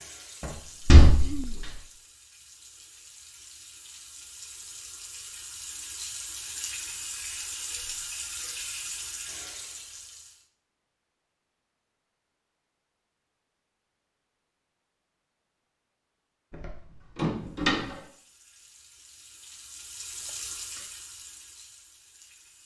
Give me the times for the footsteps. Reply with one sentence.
You can't hear the footsteps here.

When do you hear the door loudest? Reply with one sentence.
The loudest moment of the door is at 1 second.